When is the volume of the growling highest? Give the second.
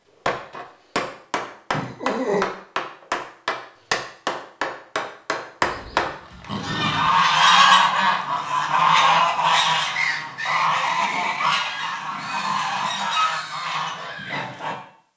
2 s.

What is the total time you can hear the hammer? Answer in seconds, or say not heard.
6 s.